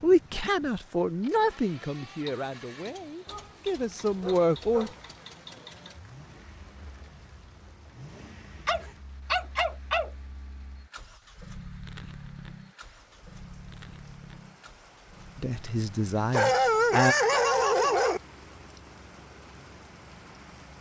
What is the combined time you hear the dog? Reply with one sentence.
You can hear the dog for 5 seconds altogether.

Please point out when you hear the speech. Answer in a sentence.
The speech can be heard from 0.0 to 4.9 s and from 15.3 to 17.1 s.